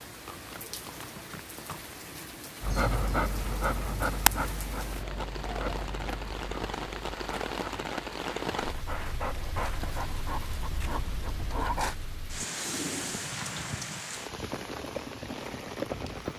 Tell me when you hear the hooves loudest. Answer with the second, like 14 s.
16 s.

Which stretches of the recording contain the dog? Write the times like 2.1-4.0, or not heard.
2.6-11.9.